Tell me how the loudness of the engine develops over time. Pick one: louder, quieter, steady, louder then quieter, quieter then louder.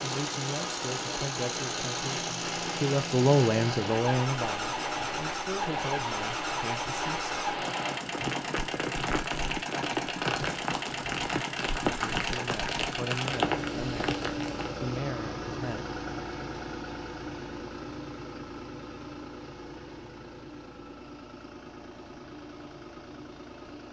quieter.